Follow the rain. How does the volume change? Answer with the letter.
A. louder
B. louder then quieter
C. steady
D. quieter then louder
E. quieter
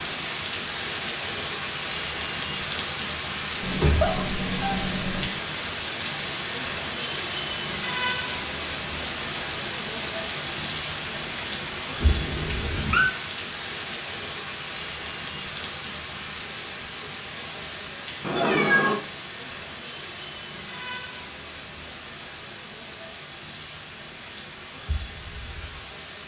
E.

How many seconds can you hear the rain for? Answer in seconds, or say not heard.
26 s.